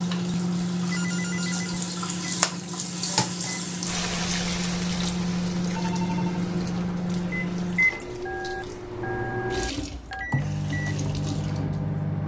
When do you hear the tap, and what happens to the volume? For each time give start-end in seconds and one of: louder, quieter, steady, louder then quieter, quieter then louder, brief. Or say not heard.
0.0-12.1 quieter then louder.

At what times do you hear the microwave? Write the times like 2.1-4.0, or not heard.
0.0-12.2.